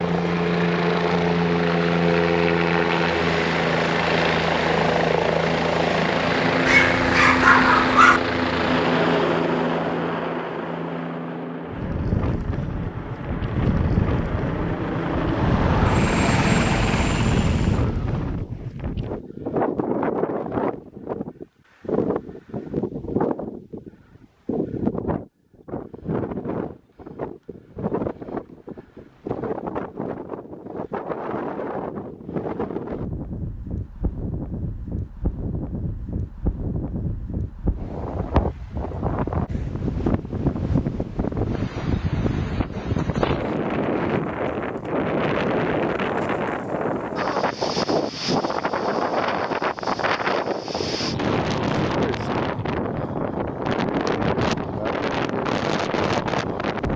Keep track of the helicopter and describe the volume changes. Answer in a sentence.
The loudness of the helicopter goes down, then up.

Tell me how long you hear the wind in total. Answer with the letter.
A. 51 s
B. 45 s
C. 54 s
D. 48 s
B.